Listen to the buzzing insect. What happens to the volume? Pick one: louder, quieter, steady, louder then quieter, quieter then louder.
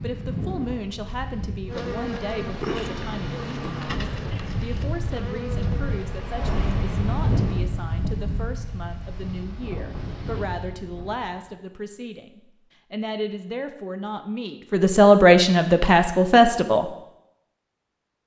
quieter.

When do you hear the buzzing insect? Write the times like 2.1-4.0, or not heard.
1.6-7.7.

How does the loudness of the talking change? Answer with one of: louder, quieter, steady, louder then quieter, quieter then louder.
louder.